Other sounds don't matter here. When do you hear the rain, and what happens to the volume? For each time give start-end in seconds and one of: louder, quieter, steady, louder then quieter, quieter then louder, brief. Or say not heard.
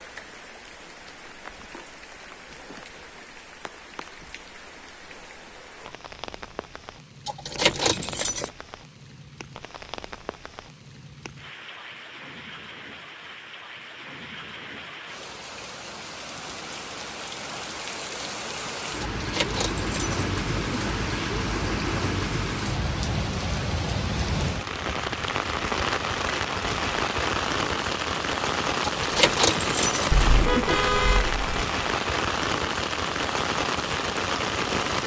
0.0-35.0 louder.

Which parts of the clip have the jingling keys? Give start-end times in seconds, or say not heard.
7.2-8.5, 19.0-20.8, 28.8-30.8.